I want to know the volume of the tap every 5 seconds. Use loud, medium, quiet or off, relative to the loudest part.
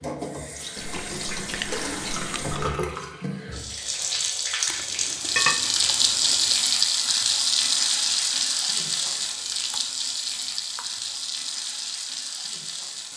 medium, loud, medium.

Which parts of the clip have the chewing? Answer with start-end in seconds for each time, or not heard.
0.8-2.8, 4.7-6.5, 9.5-11.1.